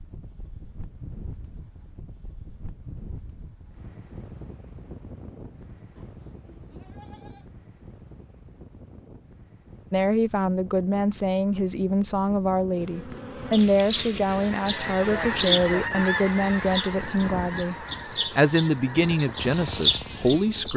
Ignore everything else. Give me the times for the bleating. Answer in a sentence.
The bleating can be heard from 6.0 to 7.5 s.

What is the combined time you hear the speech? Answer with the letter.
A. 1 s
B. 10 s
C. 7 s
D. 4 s
B.